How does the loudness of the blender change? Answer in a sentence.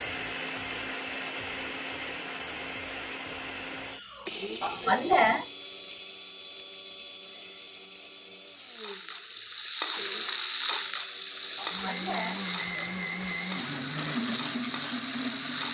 The loudness of the blender goes down, then up.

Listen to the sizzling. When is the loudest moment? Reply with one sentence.
The loudest moment of the sizzling is at 10 seconds.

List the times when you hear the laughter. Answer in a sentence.
You can hear the laughter from 4.6 to 5.5 s and from 11.6 to 12.9 s.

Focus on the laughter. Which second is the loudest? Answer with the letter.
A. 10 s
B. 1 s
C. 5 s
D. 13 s
C.